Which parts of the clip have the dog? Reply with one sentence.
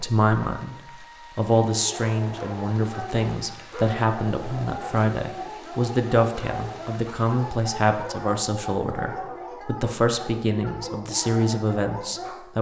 The dog can be heard from 1.8 to 12.5 s.